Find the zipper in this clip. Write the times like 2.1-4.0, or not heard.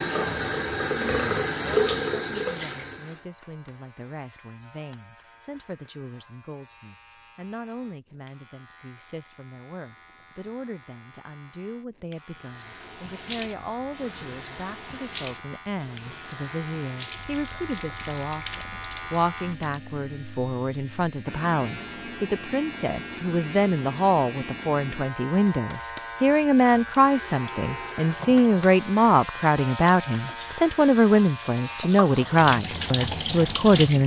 not heard.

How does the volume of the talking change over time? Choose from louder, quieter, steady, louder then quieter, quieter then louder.
louder.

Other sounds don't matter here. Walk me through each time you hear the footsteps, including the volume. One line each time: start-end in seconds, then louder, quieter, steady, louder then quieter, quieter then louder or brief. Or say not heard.
not heard.